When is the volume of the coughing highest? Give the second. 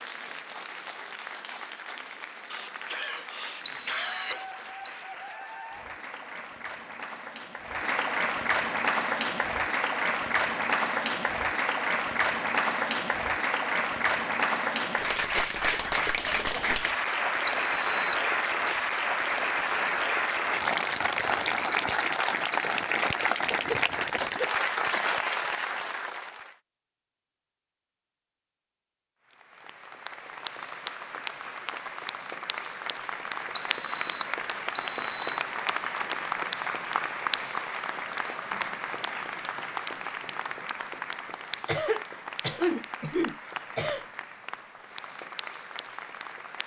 43 s.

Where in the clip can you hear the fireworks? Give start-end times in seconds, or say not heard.
not heard.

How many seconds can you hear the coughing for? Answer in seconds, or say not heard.
6 s.